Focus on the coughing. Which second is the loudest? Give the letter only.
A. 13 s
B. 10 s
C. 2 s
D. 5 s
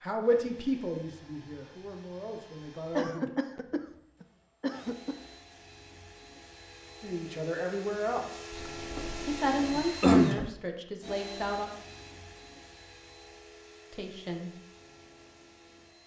B.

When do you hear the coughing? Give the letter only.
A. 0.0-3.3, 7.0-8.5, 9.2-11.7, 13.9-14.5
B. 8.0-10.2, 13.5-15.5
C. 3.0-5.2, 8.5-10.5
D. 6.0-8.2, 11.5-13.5
C.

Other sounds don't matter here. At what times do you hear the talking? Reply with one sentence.
You can hear the talking from 0.0 to 3.3 s, from 7.0 to 8.5 s, from 9.2 to 11.7 s and from 13.9 to 14.5 s.